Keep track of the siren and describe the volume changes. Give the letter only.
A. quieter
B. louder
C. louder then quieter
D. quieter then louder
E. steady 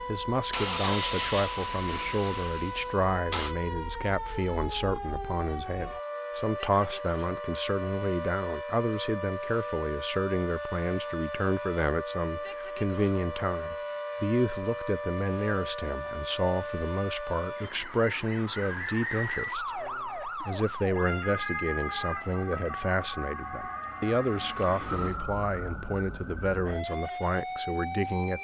E.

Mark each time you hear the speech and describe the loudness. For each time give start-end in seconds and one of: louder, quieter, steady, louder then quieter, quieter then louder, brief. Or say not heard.
0.1-28.3 steady.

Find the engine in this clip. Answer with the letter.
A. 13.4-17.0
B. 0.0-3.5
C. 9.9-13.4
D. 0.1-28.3
B.